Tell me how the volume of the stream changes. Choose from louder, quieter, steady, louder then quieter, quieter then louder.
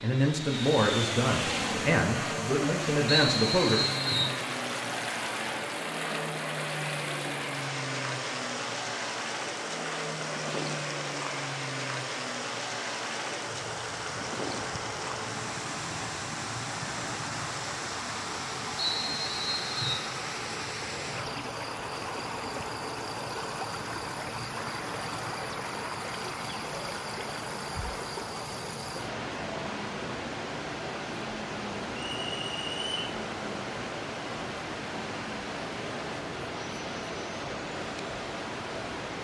steady.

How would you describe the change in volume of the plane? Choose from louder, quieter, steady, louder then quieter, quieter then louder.
quieter.